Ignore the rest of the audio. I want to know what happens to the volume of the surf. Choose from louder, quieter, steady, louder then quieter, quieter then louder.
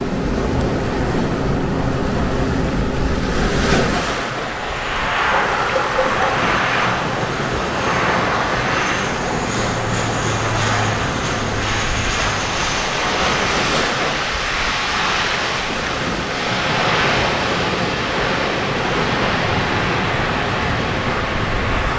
steady.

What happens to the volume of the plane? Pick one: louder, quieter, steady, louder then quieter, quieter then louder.
steady.